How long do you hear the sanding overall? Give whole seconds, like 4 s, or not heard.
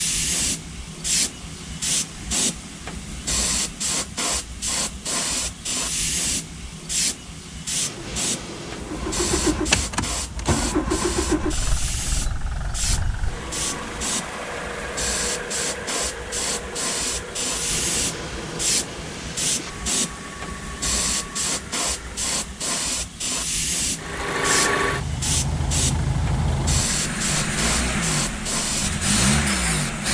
4 s.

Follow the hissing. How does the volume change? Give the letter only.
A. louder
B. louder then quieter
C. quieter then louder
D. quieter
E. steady
E.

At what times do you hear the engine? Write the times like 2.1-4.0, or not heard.
8.8-22.8, 23.9-30.0.